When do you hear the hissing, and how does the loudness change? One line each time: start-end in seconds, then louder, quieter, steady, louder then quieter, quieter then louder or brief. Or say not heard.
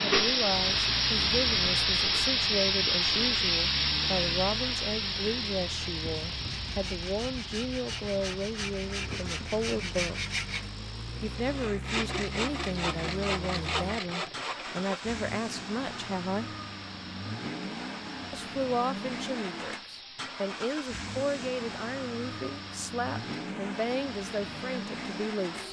0.0-25.6 quieter.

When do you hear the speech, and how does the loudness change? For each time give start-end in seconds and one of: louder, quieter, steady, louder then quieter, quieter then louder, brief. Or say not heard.
0.0-10.2 steady
11.2-16.5 steady
18.3-25.6 steady.